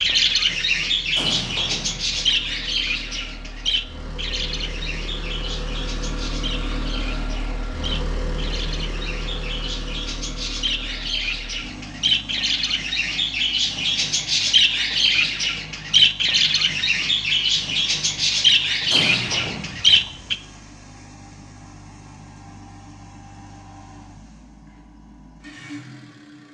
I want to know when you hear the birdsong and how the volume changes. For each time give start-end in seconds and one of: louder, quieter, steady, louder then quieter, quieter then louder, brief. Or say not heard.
0.0-20.4 quieter then louder.